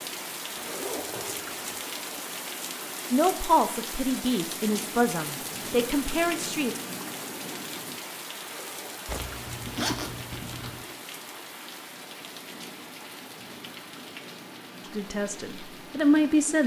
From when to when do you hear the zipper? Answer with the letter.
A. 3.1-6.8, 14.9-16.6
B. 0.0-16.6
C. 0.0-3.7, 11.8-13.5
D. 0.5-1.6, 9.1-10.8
D.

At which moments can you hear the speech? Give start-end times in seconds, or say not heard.
3.1-6.8, 14.9-16.6.